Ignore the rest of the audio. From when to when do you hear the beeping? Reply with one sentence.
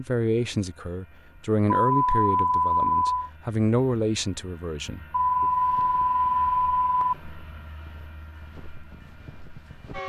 The beeping can be heard from 1.9 to 3.3 s and from 5.1 to 7.2 s.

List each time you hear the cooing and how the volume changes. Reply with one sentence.
The cooing can't be heard in this clip.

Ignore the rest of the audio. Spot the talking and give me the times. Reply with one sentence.
You can hear the talking from 0.0 to 5.5 s.